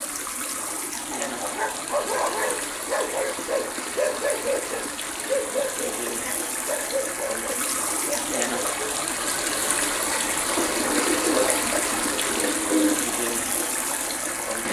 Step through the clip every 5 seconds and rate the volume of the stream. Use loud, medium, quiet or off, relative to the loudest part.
medium, loud, loud.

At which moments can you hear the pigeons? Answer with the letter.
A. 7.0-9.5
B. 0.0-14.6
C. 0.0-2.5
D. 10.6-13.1
D.